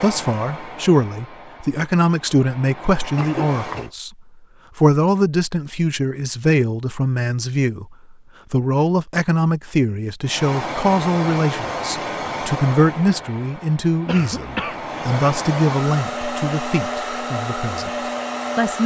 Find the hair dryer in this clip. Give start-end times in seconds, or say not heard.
0.0-3.9, 10.2-18.8.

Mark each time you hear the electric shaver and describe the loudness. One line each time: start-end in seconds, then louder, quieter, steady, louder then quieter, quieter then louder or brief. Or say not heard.
not heard.